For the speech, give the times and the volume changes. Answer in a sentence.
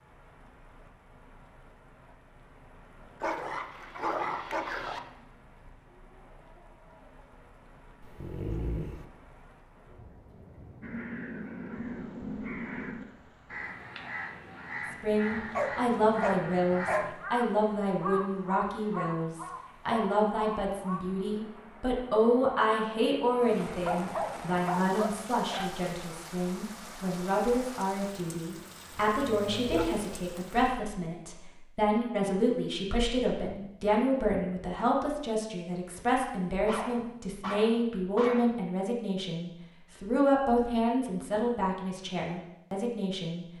You can hear the speech from 15.0 to 43.5 s, at a steady volume.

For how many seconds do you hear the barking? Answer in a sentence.
You can hear the barking for 9 seconds altogether.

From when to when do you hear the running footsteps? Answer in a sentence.
You can't hear the running footsteps here.